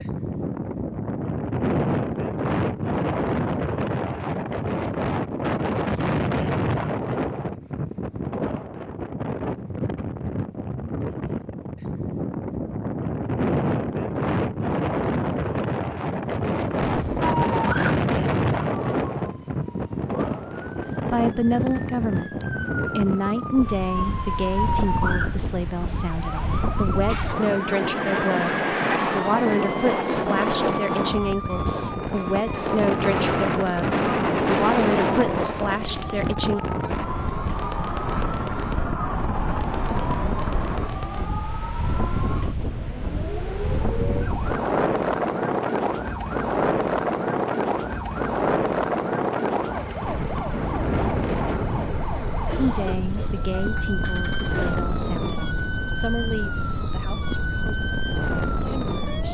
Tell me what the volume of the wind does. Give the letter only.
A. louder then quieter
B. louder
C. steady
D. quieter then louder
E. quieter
C.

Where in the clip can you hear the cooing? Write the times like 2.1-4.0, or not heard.
not heard.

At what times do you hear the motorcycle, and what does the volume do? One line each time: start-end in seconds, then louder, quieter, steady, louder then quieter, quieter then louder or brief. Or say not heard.
not heard.